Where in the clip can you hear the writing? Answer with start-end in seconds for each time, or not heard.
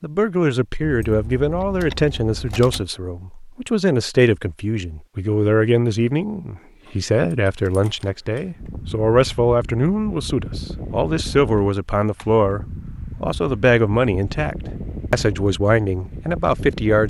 not heard.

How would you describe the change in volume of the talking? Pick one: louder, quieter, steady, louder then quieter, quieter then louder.
steady.